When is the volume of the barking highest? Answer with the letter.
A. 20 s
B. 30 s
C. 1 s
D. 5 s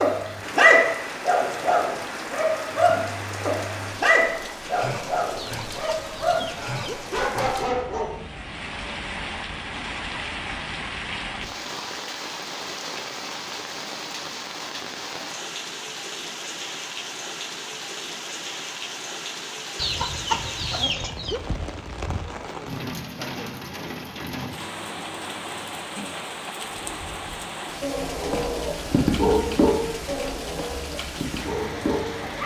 C.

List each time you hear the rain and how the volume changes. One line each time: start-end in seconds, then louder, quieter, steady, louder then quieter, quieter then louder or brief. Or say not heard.
0.0-32.4 steady.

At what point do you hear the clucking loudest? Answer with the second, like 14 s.
20 s.